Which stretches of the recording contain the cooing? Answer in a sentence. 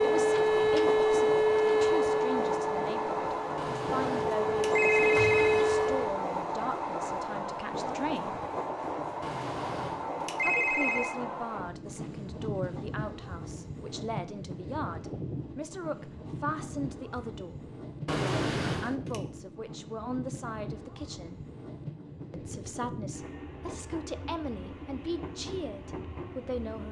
You can't hear the cooing here.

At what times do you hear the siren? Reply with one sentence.
The siren can be heard from 0.0 to 6.2 s.